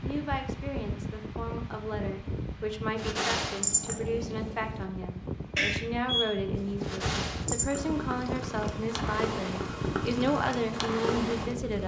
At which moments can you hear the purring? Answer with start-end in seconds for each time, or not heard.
3.0-4.9, 6.5-11.8.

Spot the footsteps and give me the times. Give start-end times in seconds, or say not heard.
not heard.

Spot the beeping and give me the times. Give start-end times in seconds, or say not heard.
5.5-6.3.